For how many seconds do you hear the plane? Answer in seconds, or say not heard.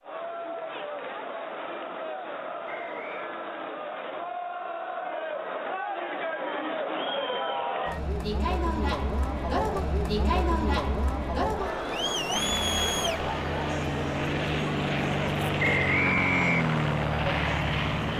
6 s.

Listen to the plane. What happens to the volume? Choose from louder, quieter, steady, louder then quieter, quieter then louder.
louder.